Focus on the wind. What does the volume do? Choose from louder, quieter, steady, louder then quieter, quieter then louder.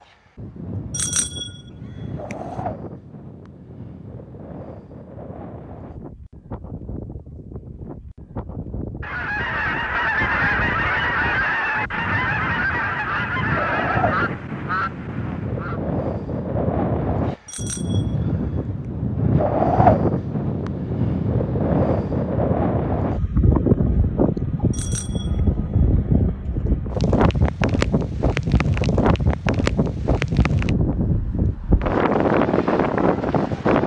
louder.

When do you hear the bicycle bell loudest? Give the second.
1 s.